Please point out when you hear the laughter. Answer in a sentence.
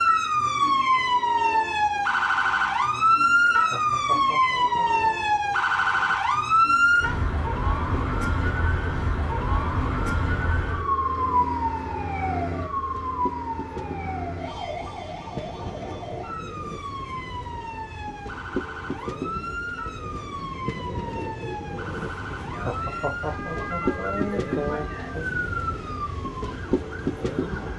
The laughter can be heard from 3.5 to 5.0 s and from 22.5 to 25.2 s.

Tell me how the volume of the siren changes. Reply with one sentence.
The volume of the siren goes down.